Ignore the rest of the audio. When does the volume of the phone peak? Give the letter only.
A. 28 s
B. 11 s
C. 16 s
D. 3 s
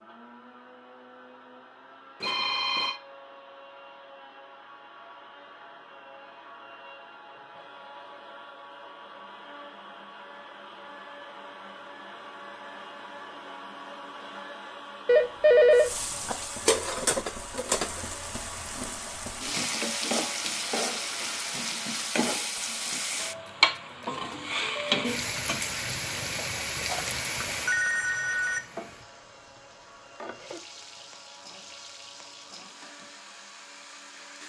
C.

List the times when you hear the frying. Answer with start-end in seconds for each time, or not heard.
15.7-34.4.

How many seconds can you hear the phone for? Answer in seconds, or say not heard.
4 s.